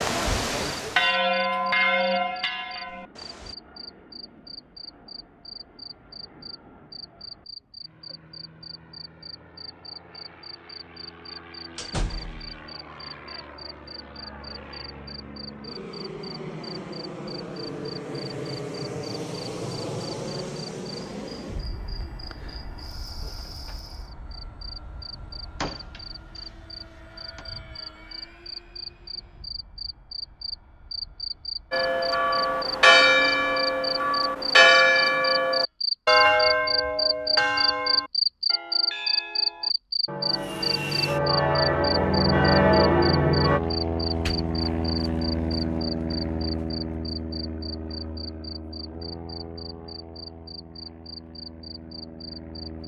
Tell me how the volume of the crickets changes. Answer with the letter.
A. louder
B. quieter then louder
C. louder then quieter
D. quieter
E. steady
C.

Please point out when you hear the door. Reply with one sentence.
You can hear the door from 11.8 to 12.6 s, from 25.6 to 26.4 s and from 44.0 to 44.5 s.